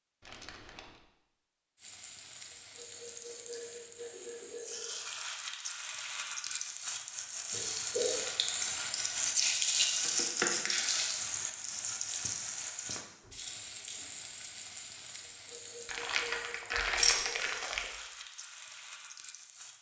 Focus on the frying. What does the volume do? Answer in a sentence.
The volume of the frying goes up, then down.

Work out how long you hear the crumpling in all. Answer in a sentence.
You can hear the crumpling for 4 seconds altogether.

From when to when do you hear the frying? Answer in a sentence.
The frying can be heard from 1.8 to 19.7 s.